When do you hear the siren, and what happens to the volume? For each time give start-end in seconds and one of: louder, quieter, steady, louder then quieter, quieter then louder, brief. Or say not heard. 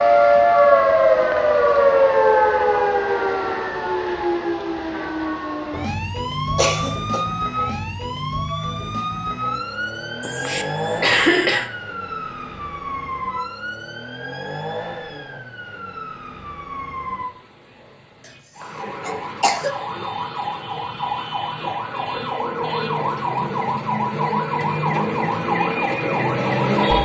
0.0-26.9 quieter then louder.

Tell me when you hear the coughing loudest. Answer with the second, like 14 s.
11 s.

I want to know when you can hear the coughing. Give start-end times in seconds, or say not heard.
6.5-7.2, 10.2-11.7, 18.2-19.8.